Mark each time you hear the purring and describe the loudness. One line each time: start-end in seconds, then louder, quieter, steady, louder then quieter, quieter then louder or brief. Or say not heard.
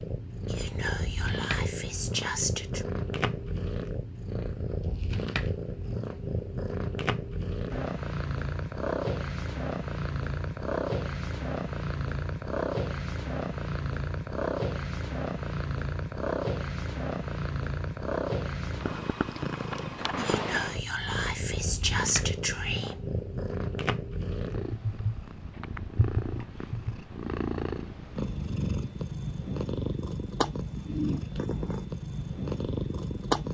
0.0-33.4 steady.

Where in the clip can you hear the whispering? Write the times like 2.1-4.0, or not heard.
0.5-2.9, 20.1-22.9.